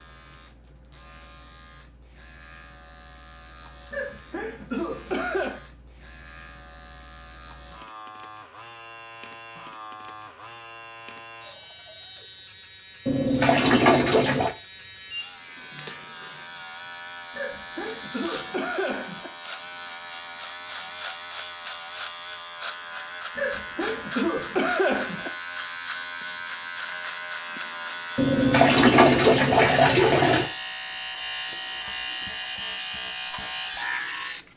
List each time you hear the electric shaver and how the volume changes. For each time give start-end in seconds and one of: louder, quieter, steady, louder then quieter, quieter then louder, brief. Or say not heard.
0.0-34.5 louder.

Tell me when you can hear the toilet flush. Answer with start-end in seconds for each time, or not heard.
13.1-14.6, 28.1-30.5.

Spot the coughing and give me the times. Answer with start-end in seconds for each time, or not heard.
3.9-5.6, 17.4-19.3, 23.4-25.3.